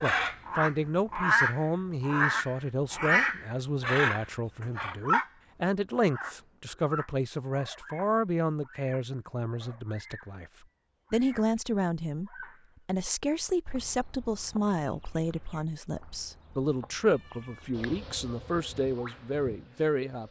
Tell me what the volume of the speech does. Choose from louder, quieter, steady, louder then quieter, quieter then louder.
steady.